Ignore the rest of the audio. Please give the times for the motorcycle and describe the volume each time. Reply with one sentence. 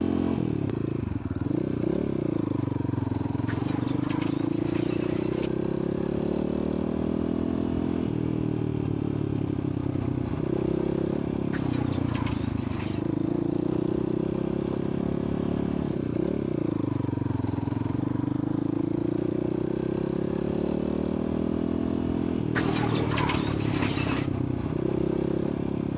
The motorcycle can be heard from 0.0 to 25.9 s, at a steady volume.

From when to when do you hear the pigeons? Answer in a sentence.
The pigeons can be heard from 3.5 to 5.5 s, from 11.5 to 13.1 s and from 22.6 to 24.3 s.